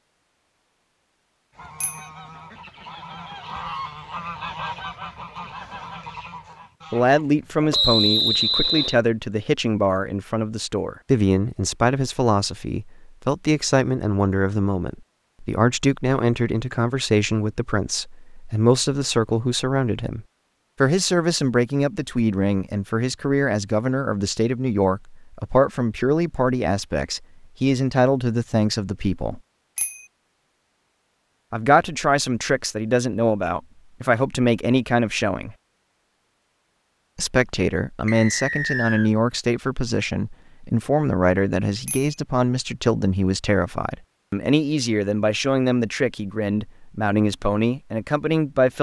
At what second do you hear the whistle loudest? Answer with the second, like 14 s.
8 s.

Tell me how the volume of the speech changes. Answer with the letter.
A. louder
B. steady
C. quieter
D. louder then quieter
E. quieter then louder
B.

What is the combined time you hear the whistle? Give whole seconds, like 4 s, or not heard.
2 s.